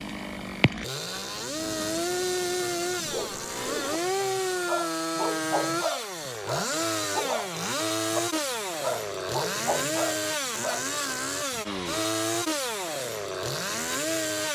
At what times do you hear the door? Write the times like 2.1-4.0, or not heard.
not heard.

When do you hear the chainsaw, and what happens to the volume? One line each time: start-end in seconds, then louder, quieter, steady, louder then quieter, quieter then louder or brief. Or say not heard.
0.0-14.5 steady.